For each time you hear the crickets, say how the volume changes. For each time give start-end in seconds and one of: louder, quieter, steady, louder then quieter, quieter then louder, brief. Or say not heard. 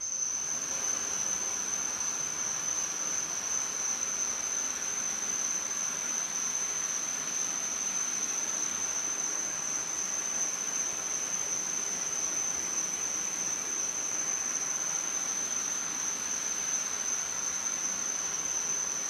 0.0-19.0 steady.